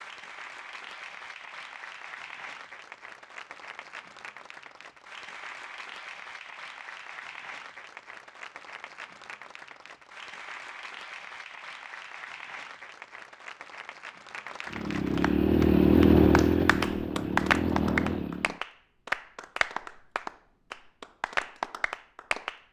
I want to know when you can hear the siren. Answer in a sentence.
The siren can't be heard in this clip.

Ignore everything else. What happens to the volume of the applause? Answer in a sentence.
The loudness of the applause goes up.